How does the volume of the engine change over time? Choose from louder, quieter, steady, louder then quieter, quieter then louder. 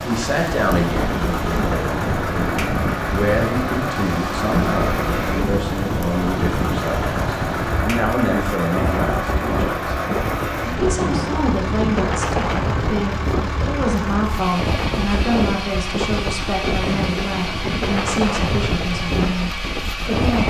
steady.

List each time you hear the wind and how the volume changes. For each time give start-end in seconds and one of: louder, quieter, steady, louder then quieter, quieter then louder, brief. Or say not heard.
0.0-20.4 steady.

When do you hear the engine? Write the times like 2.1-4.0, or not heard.
0.0-20.4.